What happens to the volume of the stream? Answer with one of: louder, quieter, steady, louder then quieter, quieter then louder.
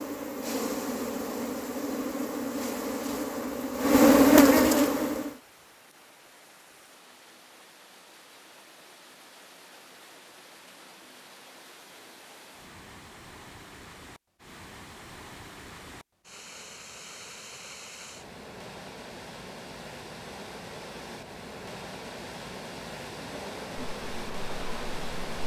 louder.